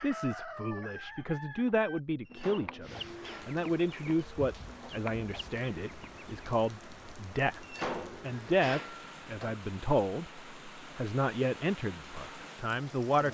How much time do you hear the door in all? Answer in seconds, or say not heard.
3 s.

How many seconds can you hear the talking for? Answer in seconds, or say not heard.
13 s.